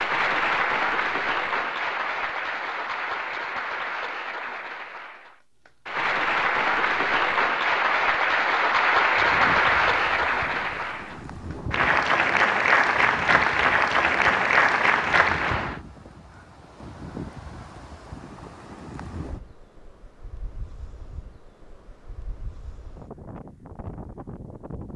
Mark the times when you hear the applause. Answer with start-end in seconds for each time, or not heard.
0.0-15.8.